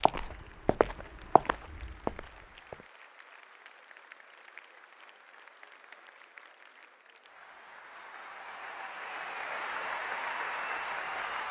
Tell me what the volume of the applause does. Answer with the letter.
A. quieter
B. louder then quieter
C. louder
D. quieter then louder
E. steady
C.